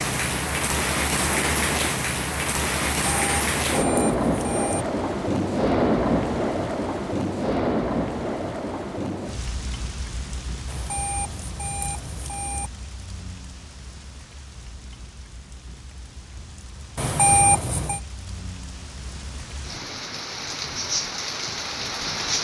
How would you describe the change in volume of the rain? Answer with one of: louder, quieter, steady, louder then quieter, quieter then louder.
quieter then louder.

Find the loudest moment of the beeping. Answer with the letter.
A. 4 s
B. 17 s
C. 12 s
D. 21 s
B.